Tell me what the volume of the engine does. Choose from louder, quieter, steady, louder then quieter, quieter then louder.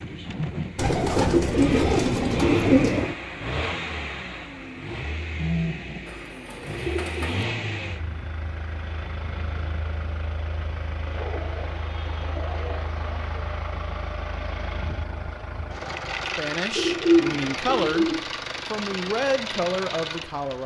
quieter then louder.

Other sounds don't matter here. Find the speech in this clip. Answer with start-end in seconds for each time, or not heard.
16.4-18.1, 18.7-20.6.